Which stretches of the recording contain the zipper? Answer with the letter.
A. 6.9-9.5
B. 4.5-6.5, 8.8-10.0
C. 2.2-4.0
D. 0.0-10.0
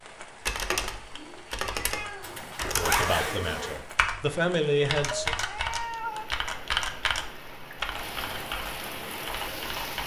C.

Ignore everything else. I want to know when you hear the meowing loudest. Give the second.
6 s.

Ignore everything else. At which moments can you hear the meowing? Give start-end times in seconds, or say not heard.
0.7-2.7, 5.1-6.2.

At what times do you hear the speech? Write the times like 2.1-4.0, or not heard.
2.8-5.3.